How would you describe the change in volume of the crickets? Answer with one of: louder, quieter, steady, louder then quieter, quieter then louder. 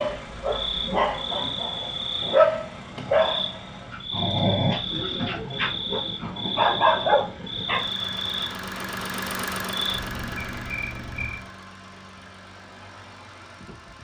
steady.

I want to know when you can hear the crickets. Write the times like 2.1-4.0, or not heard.
0.0-11.5.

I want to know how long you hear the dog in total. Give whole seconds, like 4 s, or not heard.
8 s.